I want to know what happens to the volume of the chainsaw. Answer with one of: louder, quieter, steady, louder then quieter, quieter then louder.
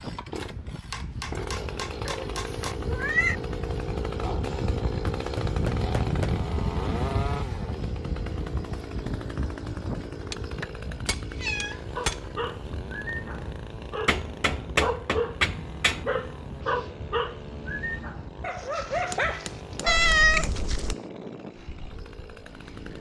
quieter.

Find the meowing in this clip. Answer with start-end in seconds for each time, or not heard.
2.0-3.4, 11.3-12.8, 19.9-20.9.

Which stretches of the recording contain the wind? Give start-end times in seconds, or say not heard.
0.0-22.9.